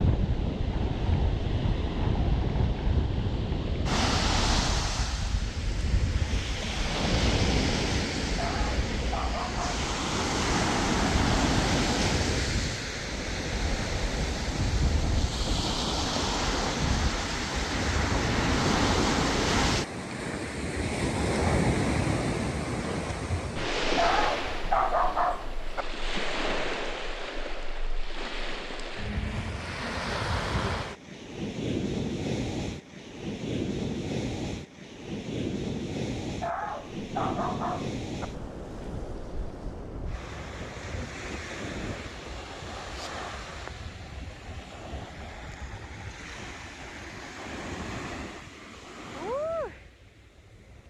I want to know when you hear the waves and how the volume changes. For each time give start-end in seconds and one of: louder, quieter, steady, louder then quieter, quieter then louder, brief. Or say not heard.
0.0-50.8 quieter.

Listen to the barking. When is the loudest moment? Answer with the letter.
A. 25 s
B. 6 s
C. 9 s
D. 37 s
A.